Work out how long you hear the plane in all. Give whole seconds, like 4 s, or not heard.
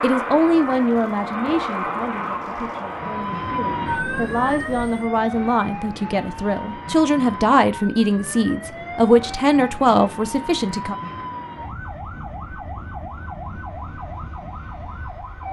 5 s.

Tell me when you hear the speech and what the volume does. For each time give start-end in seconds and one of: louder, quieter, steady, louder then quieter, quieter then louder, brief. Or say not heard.
0.0-10.9 quieter then louder.